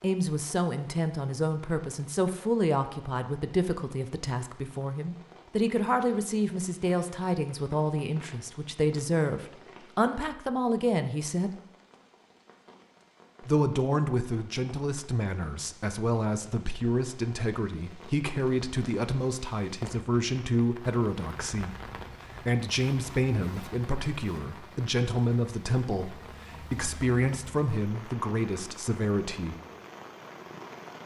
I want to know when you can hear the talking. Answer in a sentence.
You can hear the talking from 0.0 to 11.6 s and from 13.4 to 29.6 s.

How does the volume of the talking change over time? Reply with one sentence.
The loudness of the talking stays about the same.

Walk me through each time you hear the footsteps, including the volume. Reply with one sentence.
You can't hear the footsteps here.